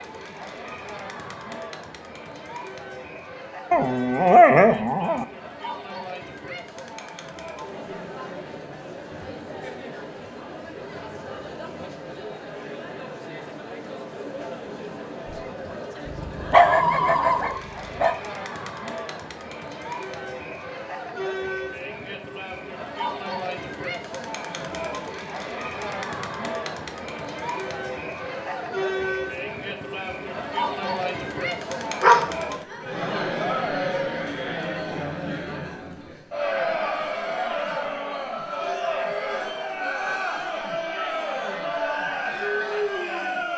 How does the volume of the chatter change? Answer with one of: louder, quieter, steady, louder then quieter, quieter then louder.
louder.